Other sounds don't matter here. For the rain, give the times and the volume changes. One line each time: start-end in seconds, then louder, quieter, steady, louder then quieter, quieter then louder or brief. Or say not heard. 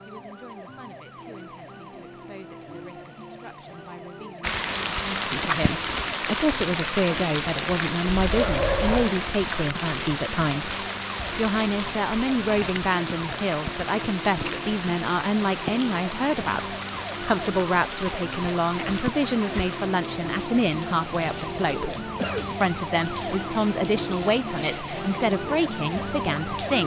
4.4-26.8 quieter.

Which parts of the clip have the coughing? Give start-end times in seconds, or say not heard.
8.1-9.0, 21.8-22.5.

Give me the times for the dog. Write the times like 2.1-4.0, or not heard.
8.3-9.4.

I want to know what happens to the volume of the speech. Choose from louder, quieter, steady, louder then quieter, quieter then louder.
louder.